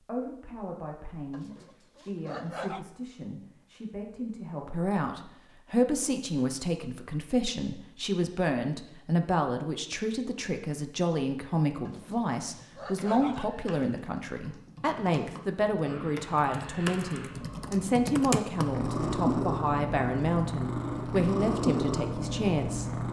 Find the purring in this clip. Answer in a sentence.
You can hear the purring from 15.8 to 23.0 s.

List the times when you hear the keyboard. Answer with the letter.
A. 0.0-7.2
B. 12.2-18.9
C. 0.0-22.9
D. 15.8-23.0
B.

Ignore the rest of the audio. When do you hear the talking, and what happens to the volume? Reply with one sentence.
The talking can be heard from 0.0 to 22.9 s, getting louder.